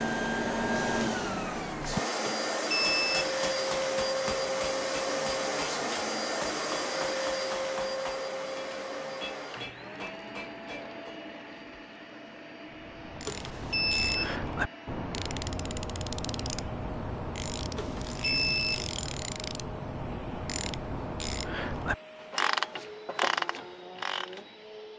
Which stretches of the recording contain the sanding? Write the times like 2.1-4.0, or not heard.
not heard.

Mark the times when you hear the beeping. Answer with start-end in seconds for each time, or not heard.
2.2-3.3, 13.2-14.4, 17.8-18.7.